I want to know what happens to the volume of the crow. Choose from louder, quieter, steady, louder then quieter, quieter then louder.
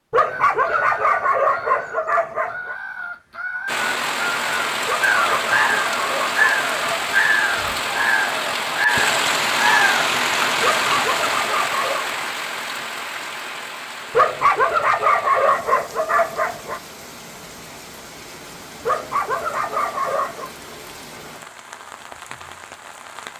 louder.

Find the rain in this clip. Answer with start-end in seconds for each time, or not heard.
3.6-23.3.